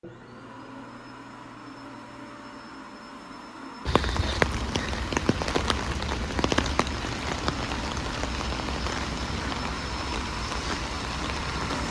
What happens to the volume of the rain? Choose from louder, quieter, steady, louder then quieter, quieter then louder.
quieter.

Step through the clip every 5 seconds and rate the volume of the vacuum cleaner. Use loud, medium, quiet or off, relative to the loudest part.
medium, loud, loud.